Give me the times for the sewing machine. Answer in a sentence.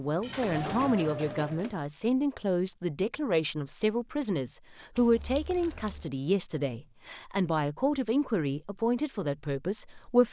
You can hear the sewing machine from 0.0 to 1.8 s.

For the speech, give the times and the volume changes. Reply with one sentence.
You can hear the speech from 0.0 to 10.2 s, at a steady volume.